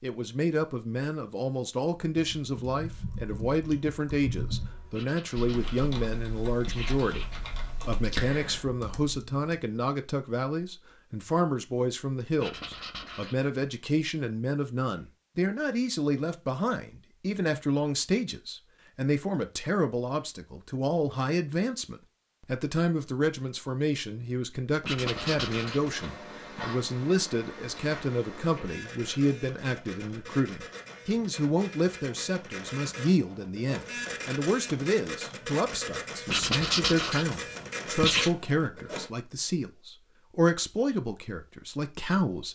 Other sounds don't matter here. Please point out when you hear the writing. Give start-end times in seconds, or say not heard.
4.9-5.8, 6.7-7.5, 12.3-13.6, 24.8-26.6, 36.2-38.3.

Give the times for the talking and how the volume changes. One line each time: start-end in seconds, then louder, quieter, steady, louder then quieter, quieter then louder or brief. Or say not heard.
0.0-42.5 steady.